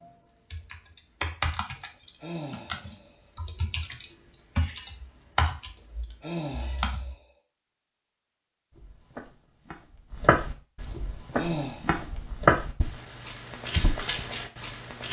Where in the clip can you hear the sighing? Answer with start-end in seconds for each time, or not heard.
1.8-3.2, 5.8-7.2, 10.9-11.8.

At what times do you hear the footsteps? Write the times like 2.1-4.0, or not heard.
8.7-15.0.